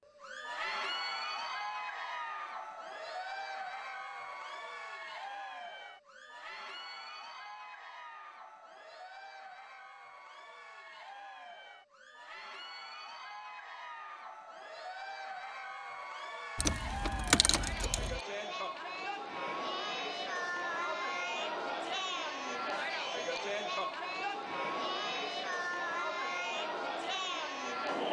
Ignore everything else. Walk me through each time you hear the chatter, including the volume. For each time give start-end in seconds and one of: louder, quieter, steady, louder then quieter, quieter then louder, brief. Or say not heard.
0.1-28.0 quieter then louder.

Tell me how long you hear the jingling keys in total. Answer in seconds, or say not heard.
2 s.